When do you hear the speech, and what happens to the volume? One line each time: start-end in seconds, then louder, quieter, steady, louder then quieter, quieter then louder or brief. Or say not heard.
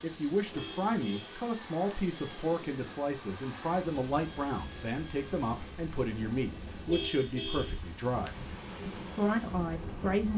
0.0-10.3 steady.